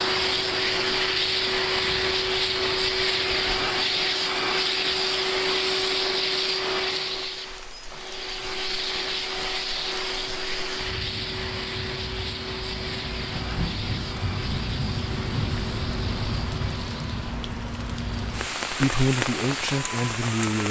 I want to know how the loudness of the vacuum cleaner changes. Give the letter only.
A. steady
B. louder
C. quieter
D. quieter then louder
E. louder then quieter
C.